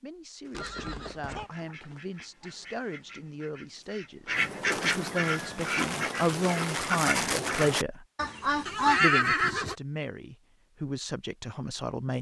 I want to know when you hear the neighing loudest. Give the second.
9 s.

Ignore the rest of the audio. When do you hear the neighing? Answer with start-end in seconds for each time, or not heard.
0.5-1.5, 4.2-5.6, 8.7-9.8.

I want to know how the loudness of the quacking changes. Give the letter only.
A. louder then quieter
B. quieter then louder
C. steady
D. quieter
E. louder
E.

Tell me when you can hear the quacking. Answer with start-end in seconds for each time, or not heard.
0.5-9.0.